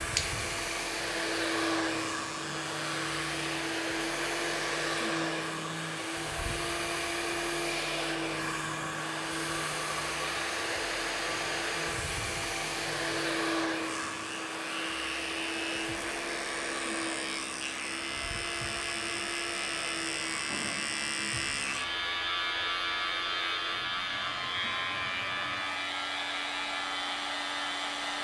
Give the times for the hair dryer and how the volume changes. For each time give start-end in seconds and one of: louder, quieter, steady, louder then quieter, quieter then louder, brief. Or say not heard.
0.0-28.1 quieter.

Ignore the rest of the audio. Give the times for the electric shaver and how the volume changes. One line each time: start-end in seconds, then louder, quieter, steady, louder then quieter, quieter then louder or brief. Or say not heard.
0.0-28.1 louder.